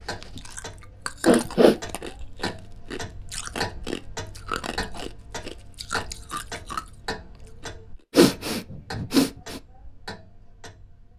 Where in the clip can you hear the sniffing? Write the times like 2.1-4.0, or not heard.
1.2-1.8, 8.1-9.6.